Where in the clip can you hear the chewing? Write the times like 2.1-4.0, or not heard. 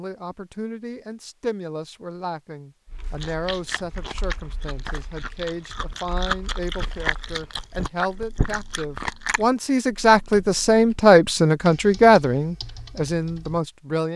3.2-9.4.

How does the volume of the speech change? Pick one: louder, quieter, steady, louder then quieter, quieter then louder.
louder.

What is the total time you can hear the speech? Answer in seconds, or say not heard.
14 s.